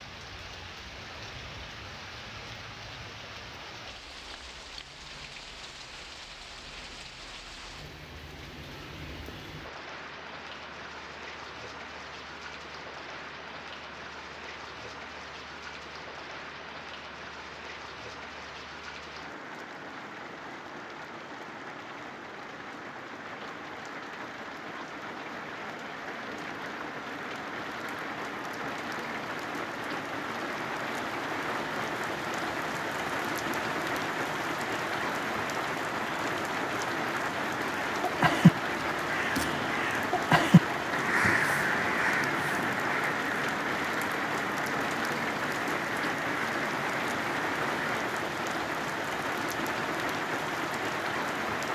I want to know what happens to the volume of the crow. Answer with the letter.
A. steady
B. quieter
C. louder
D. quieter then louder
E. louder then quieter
B.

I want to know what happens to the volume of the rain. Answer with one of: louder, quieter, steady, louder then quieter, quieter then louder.
louder.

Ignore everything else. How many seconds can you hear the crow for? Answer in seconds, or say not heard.
10 s.